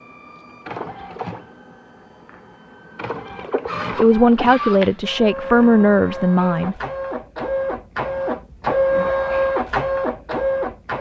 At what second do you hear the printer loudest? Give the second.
9 s.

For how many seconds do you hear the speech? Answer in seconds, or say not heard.
3 s.